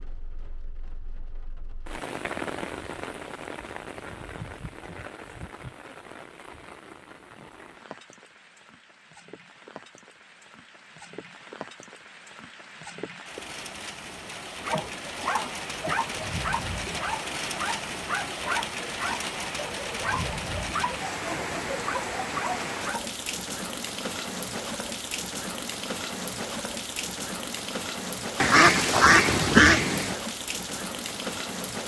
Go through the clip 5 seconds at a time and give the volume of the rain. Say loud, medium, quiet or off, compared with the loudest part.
medium, quiet, medium, loud, loud, loud, loud.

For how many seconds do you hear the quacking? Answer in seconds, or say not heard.
2 s.